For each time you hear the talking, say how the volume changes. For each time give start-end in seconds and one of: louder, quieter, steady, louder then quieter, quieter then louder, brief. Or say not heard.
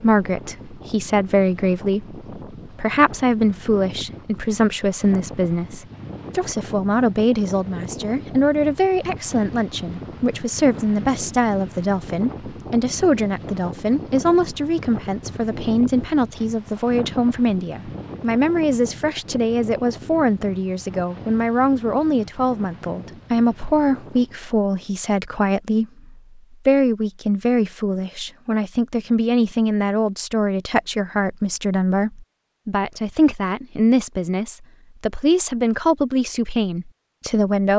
0.0-37.7 steady.